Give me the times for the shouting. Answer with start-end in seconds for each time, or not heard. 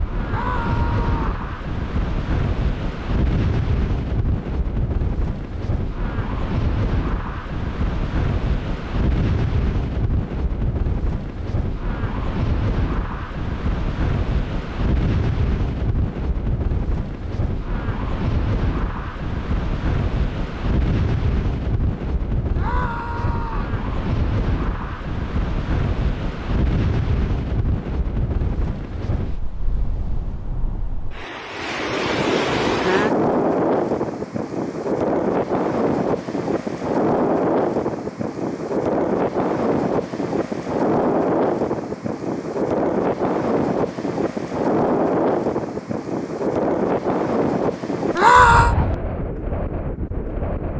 0.2-1.4, 22.6-23.8, 48.1-48.8.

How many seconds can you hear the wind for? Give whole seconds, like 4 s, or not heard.
51 s.